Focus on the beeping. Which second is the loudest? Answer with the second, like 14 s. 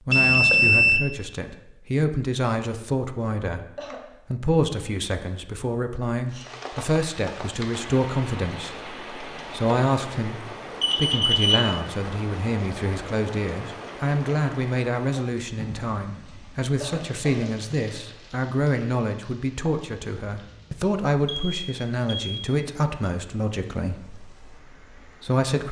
1 s.